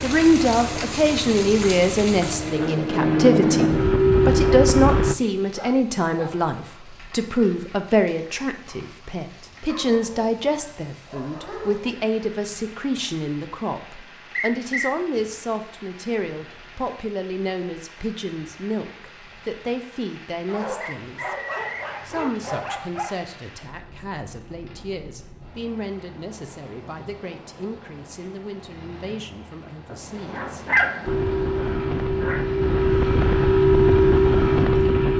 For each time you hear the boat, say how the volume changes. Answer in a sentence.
The boat can be heard from 0.0 to 5.2 s, getting louder; and from 31.1 to 35.1 s, getting louder.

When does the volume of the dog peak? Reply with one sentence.
The volume of the dog peaks at 31 seconds.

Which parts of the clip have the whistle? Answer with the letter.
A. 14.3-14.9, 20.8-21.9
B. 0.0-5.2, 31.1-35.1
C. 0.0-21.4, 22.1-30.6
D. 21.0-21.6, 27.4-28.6
A.